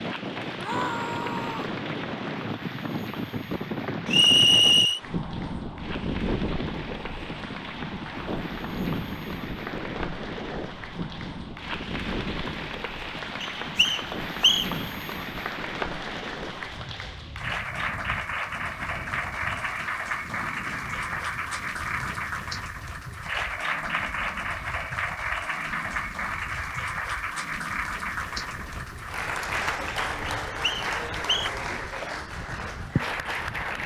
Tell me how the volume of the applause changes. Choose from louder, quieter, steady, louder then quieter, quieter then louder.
louder.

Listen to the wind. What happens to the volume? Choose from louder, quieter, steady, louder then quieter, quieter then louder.
quieter.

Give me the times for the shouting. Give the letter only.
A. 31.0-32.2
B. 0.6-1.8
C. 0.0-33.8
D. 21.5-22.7
B.